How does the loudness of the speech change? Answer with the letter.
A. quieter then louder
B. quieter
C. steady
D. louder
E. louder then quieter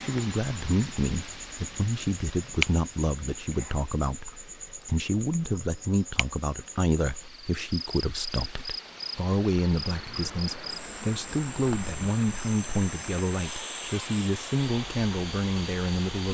C.